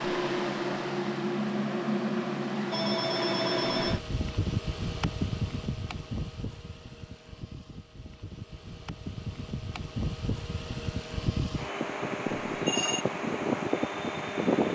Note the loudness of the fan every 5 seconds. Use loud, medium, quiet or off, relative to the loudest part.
loud, medium, loud.